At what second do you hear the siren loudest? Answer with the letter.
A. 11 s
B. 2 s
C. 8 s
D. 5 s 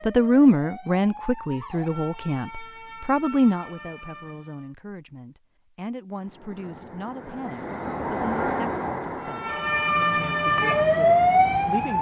A.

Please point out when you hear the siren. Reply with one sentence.
You can hear the siren from 0.0 to 4.7 s and from 9.2 to 11.9 s.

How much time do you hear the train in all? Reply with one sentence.
The train can be heard for 6 seconds in total.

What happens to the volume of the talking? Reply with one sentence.
The loudness of the talking goes down.